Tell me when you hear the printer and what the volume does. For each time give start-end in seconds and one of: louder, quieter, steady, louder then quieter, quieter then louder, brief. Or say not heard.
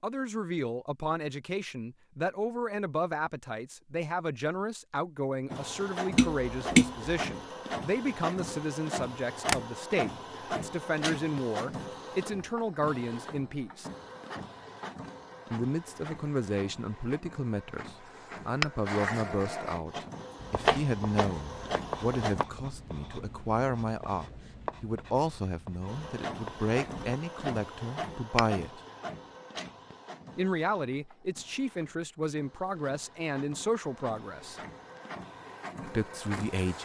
5.5-22.4 quieter then louder
25.9-36.8 quieter then louder.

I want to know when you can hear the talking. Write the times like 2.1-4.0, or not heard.
0.0-13.9, 15.5-28.8, 30.4-34.6, 35.9-36.8.